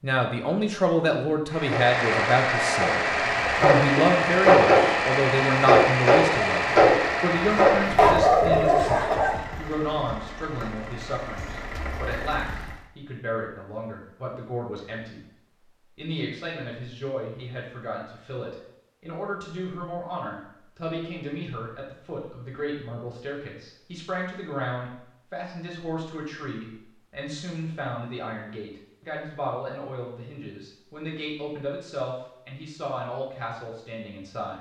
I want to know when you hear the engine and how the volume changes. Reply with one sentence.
The engine can be heard from 1.5 to 12.8 s, getting quieter.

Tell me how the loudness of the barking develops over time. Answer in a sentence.
The loudness of the barking goes up.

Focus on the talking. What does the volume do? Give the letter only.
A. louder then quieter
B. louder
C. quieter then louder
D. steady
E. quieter
E.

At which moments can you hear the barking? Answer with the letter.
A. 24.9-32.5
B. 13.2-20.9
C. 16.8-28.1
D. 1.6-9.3
D.